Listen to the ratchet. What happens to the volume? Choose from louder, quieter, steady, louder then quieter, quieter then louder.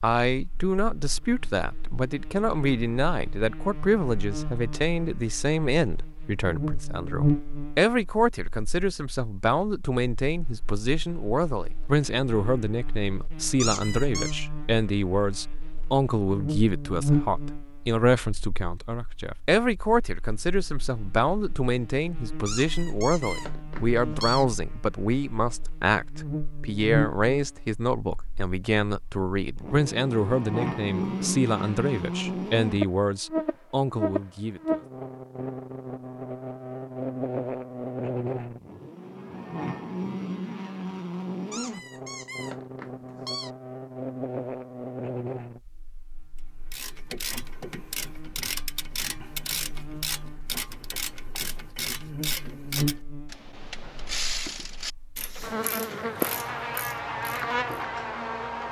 quieter.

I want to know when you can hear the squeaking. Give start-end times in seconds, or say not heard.
13.6-14.4, 22.4-24.4, 41.5-43.5.